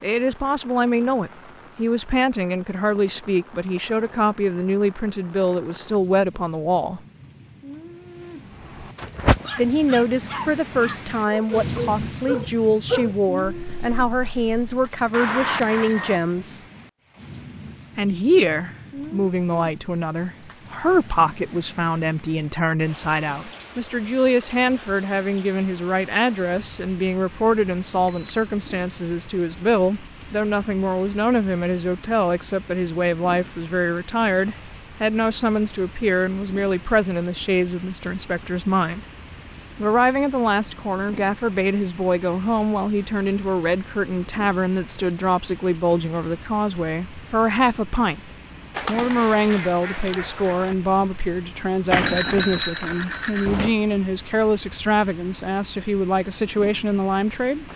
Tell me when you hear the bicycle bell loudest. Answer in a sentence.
The volume of the bicycle bell peaks at 52 seconds.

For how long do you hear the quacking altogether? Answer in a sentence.
You can hear the quacking for 2 seconds altogether.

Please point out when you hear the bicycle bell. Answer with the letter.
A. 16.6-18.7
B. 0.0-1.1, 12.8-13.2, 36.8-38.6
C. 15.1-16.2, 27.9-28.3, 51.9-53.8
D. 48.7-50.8
C.